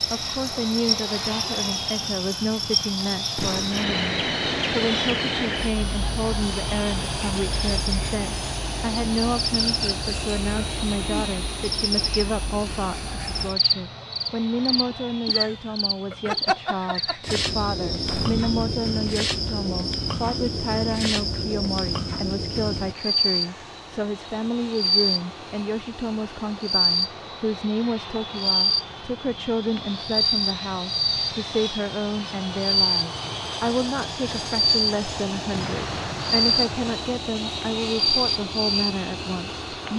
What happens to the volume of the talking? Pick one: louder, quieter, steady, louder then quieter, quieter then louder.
steady.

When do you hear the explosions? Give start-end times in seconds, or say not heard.
3.4-3.9, 18.1-18.9, 35.5-37.0.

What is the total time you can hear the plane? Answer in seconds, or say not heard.
40 s.